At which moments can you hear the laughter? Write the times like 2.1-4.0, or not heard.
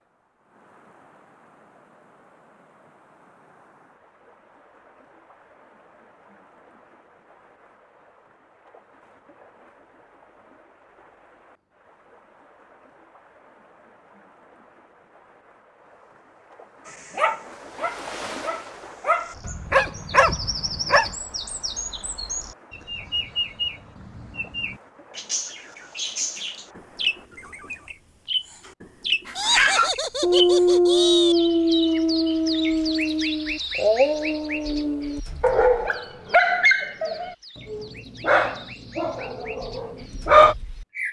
29.4-31.4.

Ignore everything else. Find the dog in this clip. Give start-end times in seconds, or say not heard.
16.9-21.1, 29.2-40.5.